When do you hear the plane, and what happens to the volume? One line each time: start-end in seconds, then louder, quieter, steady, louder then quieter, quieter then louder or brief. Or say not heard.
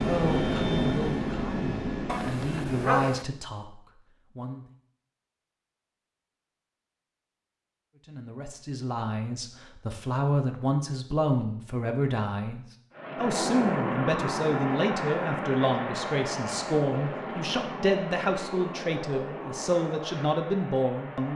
0.0-3.0 brief
12.9-21.3 quieter.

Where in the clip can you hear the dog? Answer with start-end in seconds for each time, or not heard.
2.0-3.2.